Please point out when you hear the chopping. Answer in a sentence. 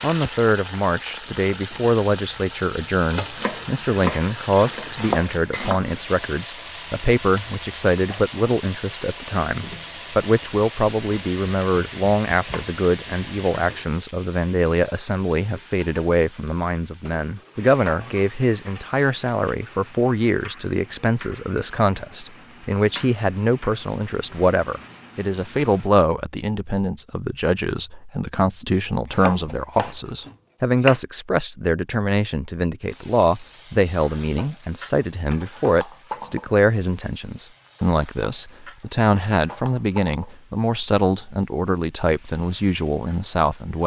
You can hear the chopping from 3.4 to 5.9 s and from 29.1 to 31.0 s.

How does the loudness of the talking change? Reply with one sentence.
The volume of the talking stays about the same.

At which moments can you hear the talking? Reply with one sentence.
The talking can be heard from 0.0 to 43.8 s.